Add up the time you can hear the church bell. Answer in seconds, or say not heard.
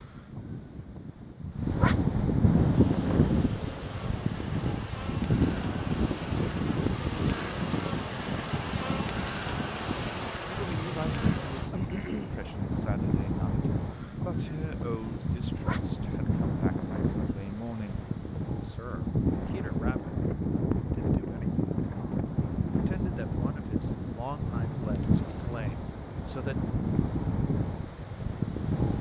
not heard.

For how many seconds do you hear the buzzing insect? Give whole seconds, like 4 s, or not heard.
10 s.